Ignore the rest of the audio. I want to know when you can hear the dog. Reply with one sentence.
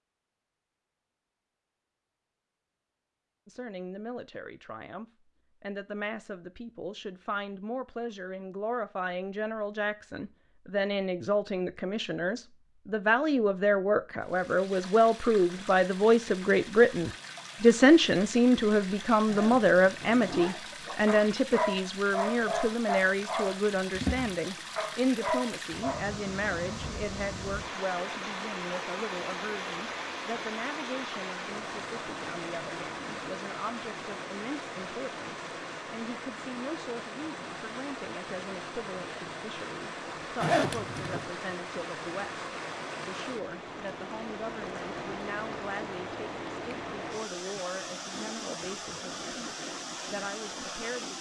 The dog can be heard from 20.9 to 26.1 s.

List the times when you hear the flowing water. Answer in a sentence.
You can hear the flowing water from 14.2 to 51.1 s.